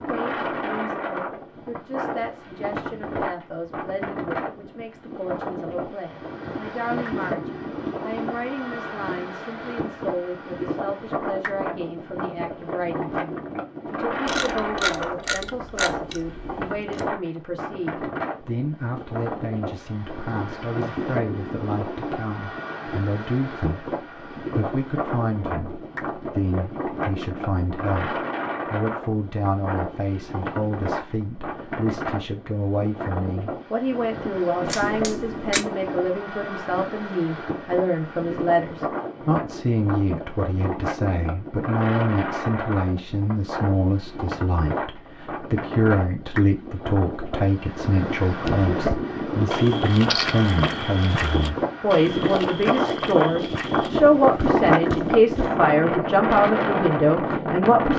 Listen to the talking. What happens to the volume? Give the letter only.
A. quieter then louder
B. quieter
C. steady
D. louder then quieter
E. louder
E.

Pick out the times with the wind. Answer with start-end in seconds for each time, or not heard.
0.0-57.9.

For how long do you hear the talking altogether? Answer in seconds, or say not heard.
58 s.